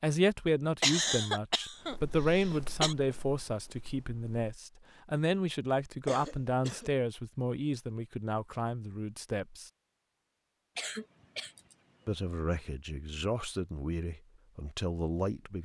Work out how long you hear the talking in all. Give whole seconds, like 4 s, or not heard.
13 s.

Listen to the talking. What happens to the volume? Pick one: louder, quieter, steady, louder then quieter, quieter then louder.
quieter.